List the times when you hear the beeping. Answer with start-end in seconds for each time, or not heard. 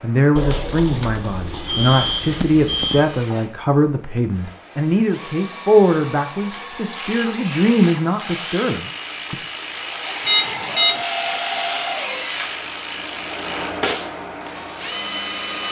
0.3-3.0, 10.2-11.1.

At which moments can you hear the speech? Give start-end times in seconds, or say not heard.
0.0-9.4.